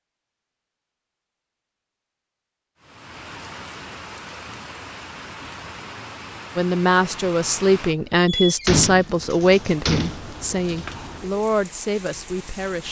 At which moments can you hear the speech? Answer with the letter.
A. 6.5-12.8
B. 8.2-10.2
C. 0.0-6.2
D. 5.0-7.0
A.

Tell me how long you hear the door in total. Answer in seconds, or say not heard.
2 s.